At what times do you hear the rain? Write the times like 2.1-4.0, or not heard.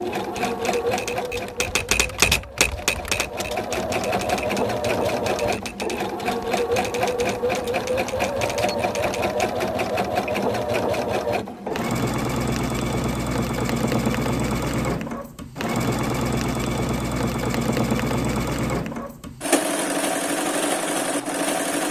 not heard.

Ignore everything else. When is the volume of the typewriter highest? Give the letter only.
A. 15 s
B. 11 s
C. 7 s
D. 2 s
D.